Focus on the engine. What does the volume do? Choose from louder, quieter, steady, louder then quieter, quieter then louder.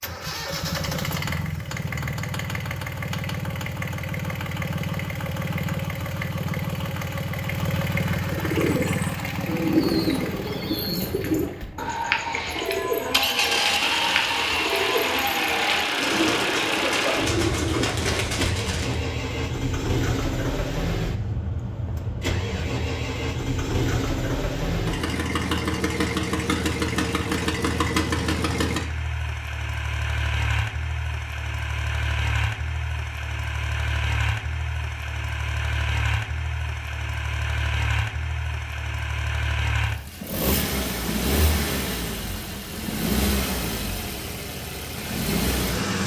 steady.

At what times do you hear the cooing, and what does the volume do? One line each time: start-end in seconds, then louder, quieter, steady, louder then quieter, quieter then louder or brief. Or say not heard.
8.2-19.0 steady.